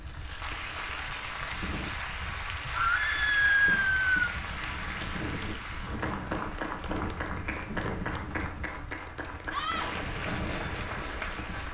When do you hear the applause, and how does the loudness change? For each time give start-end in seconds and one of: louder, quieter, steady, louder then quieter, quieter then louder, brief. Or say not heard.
0.0-11.6 steady.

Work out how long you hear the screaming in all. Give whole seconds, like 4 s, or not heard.
2 s.